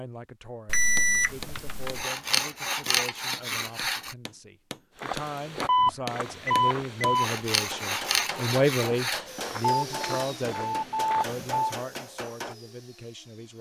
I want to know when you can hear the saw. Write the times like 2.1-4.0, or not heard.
1.9-4.2, 7.2-9.2.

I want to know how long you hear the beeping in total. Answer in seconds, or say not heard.
5 s.